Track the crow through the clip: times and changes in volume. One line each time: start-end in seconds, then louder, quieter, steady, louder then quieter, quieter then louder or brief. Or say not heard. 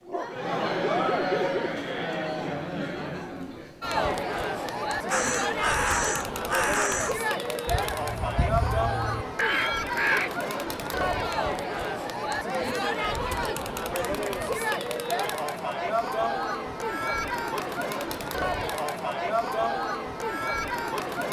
5.1-10.3 quieter then louder.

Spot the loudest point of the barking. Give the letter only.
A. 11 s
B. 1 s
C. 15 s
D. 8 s
B.